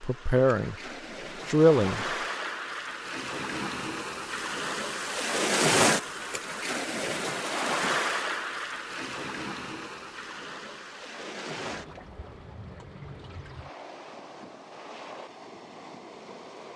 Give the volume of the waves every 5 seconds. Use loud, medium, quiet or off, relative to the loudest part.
medium, loud, quiet, quiet.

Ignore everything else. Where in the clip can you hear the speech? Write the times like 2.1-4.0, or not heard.
0.0-0.8, 1.4-2.1.